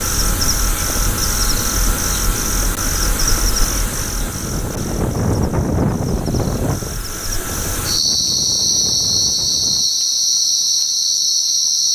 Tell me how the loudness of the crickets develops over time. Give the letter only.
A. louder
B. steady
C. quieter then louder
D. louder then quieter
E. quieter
C.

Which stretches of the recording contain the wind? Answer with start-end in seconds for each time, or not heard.
0.1-9.9.